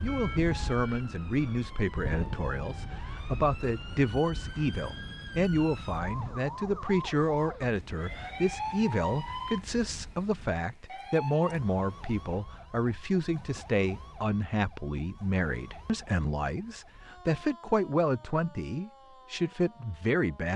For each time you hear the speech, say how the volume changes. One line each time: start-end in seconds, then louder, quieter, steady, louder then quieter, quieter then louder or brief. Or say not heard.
0.0-20.5 steady.